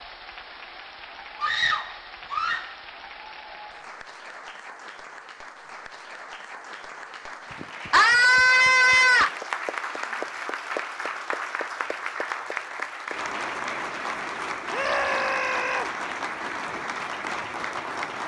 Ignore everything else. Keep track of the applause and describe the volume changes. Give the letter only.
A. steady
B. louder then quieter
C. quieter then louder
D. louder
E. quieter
D.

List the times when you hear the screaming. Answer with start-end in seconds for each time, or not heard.
1.4-2.7, 7.9-9.3, 14.7-15.8.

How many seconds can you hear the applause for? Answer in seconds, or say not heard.
18 s.